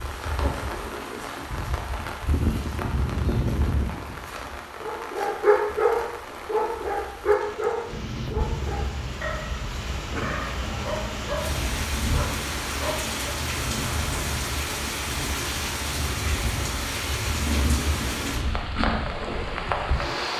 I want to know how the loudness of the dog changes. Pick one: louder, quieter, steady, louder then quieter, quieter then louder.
quieter.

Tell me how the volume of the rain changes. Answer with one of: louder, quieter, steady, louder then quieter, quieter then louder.
quieter then louder.